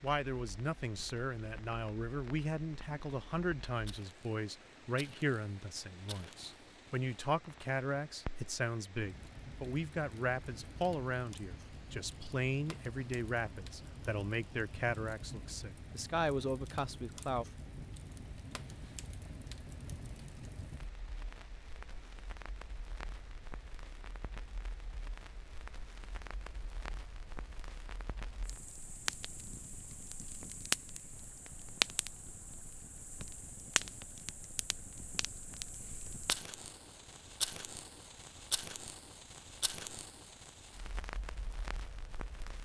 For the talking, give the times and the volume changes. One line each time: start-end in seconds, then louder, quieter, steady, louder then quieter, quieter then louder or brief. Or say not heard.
0.0-17.4 steady.